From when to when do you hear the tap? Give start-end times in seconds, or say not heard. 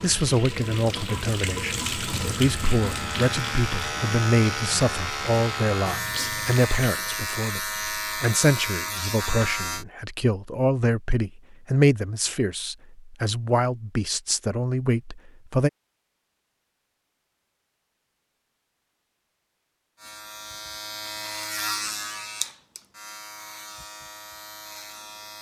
0.0-7.2.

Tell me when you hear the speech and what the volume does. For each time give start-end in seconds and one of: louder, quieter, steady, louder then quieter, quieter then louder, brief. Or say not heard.
0.0-15.7 steady.